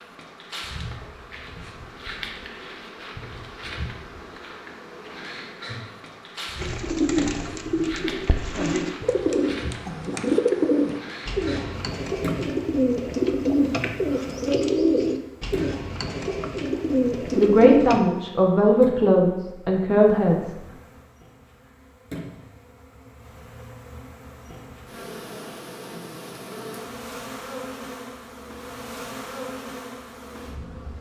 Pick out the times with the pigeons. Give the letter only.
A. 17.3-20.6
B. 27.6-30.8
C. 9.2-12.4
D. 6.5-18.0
D.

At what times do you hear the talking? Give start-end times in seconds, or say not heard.
17.3-20.6.